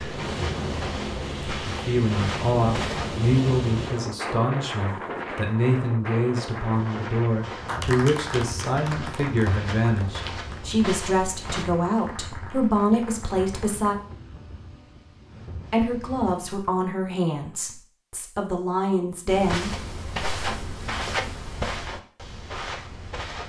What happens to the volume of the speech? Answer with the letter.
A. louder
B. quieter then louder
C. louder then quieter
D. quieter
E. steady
E.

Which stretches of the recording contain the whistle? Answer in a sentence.
You can't hear the whistle here.